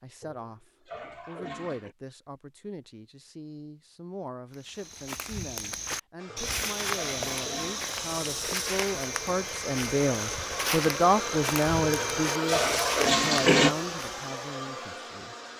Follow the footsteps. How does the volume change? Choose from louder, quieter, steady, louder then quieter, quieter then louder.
steady.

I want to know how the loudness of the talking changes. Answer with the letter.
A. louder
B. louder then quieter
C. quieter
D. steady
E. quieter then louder
B.